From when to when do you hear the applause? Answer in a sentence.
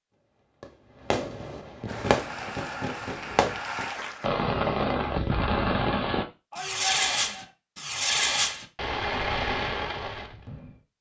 The applause can be heard from 1.9 to 4.3 s.